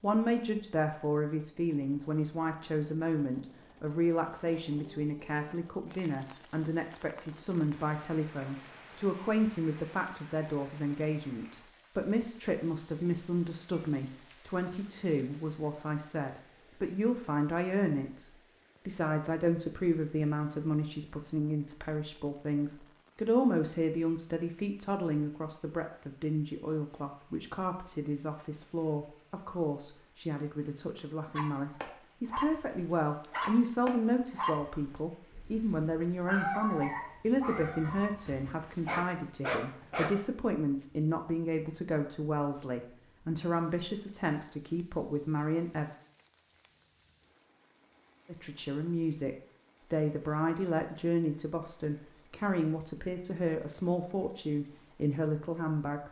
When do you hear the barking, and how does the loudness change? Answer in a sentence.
You can hear the barking from 31.3 to 40.1 s, at a steady volume.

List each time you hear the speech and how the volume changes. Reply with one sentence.
The speech can be heard from 0.0 to 45.9 s, at a steady volume; and from 48.2 to 56.0 s, at a steady volume.